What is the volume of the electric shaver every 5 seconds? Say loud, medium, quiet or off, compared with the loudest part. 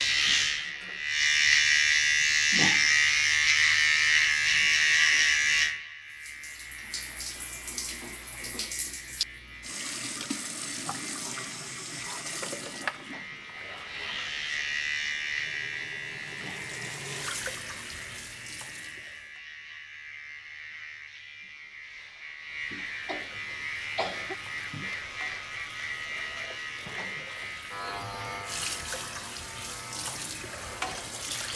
loud, medium, quiet, quiet, quiet, quiet, quiet.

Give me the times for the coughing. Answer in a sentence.
You can hear the coughing from 22.8 to 24.4 s.